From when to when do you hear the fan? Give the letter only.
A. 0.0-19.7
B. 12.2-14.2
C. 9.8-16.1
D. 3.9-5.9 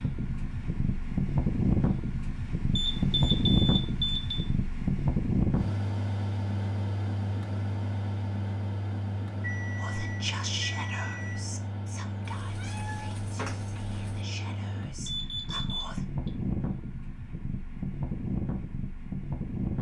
A.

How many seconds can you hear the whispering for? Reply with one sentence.
The whispering can be heard for 6 seconds in total.